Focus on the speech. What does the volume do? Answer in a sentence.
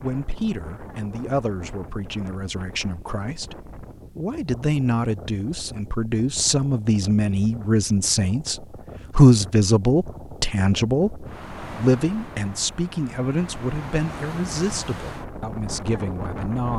The volume of the speech goes up, then down.